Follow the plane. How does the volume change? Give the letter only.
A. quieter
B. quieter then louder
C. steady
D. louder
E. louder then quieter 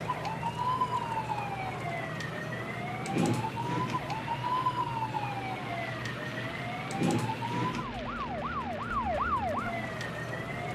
C.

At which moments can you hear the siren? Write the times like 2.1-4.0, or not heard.
0.0-10.7.